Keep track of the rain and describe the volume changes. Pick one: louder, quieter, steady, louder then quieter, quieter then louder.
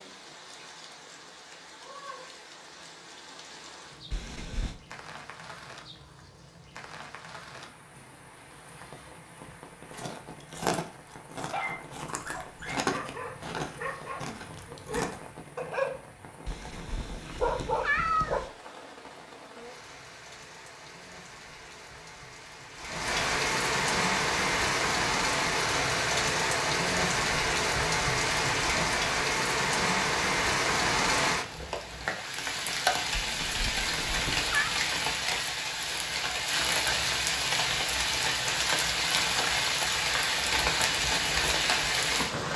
louder.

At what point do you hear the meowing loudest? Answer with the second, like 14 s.
18 s.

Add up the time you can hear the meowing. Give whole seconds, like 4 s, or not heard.
4 s.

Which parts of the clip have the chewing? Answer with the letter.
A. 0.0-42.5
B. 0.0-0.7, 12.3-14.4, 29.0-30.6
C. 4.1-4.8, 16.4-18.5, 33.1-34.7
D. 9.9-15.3
D.